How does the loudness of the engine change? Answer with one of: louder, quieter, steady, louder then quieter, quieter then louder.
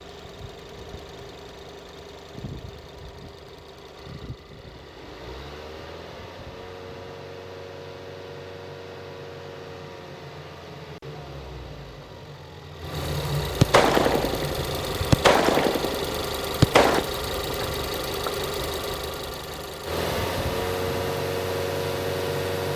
louder.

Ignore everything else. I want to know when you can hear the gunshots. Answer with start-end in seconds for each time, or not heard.
13.6-17.1.